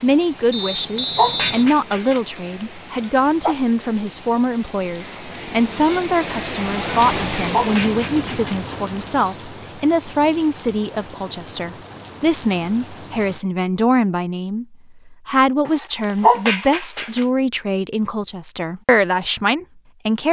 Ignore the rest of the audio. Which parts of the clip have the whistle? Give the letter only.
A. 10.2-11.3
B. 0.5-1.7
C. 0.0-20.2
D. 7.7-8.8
B.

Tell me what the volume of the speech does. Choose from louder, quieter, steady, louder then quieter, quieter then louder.
steady.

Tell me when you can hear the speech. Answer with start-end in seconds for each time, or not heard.
0.0-20.2.